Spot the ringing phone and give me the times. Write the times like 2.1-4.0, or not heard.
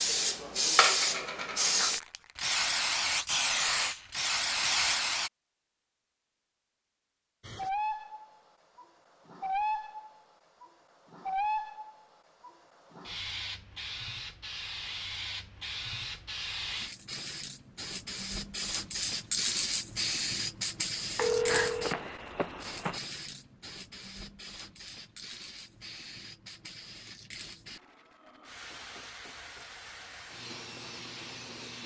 21.1-23.0.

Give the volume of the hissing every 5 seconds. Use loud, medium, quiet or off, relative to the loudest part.
loud, medium, medium, medium, medium, quiet, quiet.